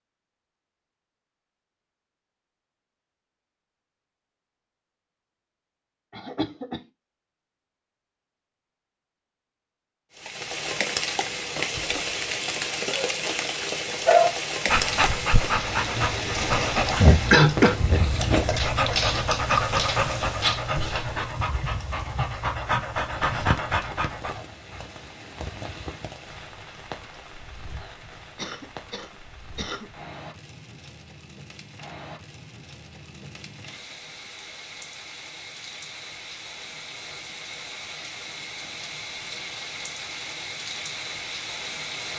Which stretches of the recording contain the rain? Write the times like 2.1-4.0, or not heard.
10.2-42.1.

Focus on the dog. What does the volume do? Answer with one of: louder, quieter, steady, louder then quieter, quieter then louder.
quieter.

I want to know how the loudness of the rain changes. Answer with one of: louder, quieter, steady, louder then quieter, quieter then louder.
quieter then louder.